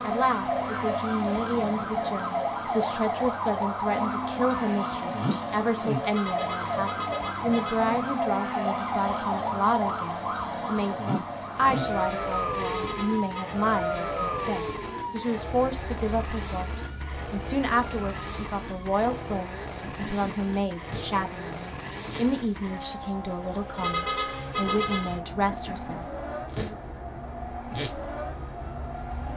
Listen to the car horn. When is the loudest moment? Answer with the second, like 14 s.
24 s.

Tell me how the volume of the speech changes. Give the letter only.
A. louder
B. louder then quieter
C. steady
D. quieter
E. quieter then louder
C.